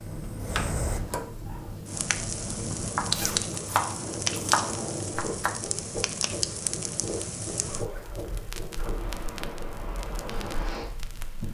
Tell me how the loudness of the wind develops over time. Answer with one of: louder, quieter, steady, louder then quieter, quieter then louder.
steady.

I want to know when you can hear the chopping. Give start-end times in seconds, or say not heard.
3.0-5.5.